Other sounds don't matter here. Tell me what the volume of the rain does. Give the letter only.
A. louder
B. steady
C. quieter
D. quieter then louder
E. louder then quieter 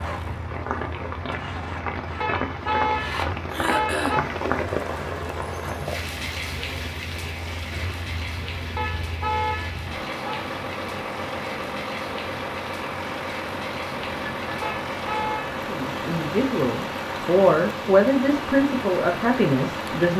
C.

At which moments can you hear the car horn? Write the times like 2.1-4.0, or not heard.
2.2-4.2, 8.8-10.4, 14.6-15.6.